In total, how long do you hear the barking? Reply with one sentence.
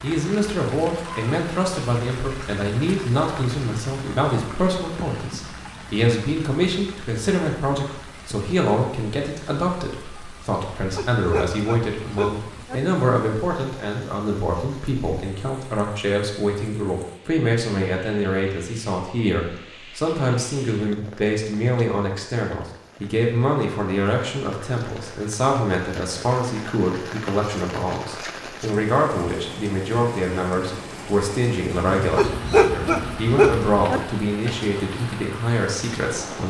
You can hear the barking for 4 seconds altogether.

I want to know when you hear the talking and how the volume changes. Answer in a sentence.
The talking can be heard from 0.0 to 36.4 s, at a steady volume.